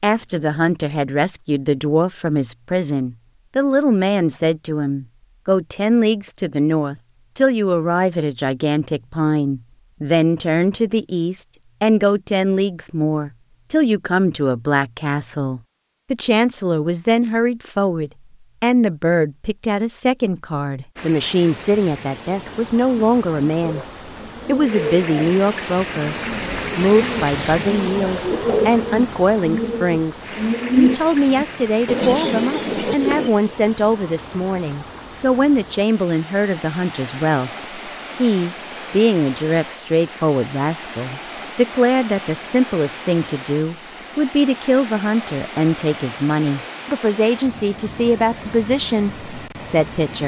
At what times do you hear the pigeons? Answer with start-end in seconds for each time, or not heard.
22.9-33.3.